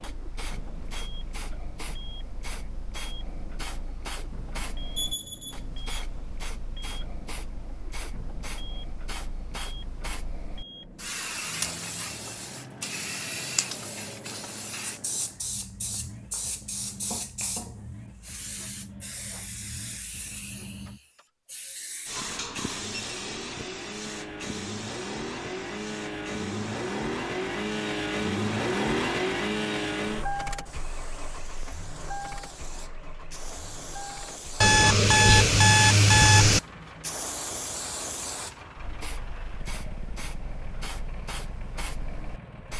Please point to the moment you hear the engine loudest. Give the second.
29 s.